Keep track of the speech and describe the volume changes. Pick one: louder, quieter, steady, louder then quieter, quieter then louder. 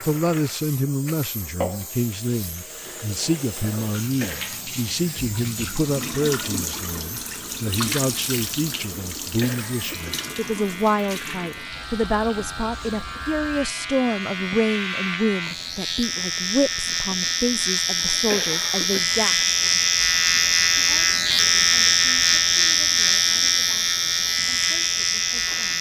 quieter.